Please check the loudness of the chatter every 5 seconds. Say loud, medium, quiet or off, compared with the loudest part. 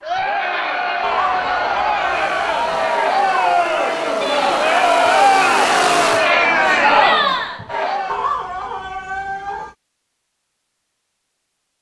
loud, loud, off.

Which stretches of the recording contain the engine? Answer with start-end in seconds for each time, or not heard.
2.1-6.3.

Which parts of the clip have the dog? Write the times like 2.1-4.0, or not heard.
1.0-2.8, 8.1-9.8.